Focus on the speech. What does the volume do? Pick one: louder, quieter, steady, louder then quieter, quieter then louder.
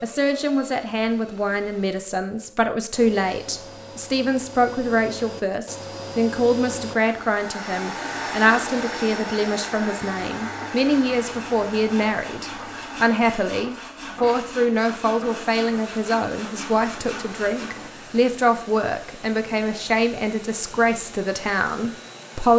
steady.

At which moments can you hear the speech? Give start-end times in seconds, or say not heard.
0.0-22.5.